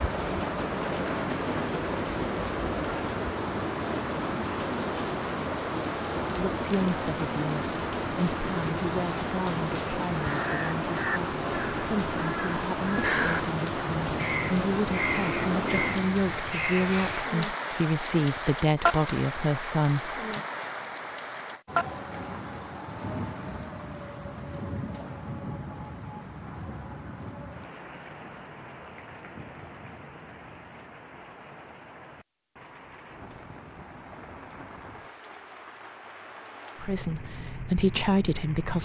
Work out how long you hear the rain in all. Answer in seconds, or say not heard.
39 s.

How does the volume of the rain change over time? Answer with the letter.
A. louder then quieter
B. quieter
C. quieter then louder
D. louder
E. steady
B.